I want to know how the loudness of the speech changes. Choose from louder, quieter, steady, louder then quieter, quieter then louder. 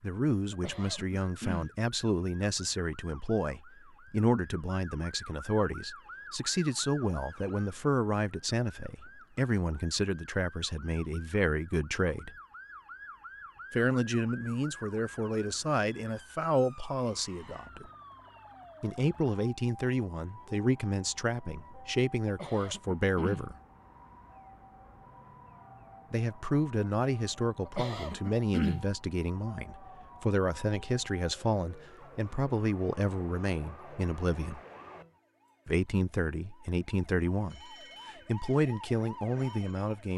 steady.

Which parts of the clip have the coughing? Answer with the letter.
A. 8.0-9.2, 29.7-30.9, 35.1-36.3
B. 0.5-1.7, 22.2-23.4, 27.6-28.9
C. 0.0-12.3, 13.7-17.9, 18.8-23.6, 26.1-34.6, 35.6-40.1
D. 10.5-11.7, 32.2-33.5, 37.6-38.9
B.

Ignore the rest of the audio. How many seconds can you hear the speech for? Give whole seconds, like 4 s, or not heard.
34 s.